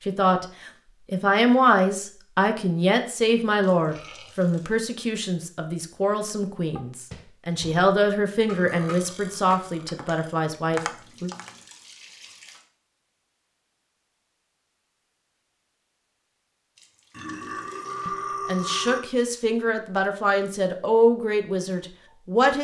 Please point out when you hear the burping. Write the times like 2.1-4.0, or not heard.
3.9-4.4, 8.4-10.4, 17.1-19.0.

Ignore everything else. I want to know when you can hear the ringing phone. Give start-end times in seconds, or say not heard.
not heard.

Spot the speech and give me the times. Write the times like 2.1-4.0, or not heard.
0.1-0.5, 1.1-11.3, 18.1-22.6.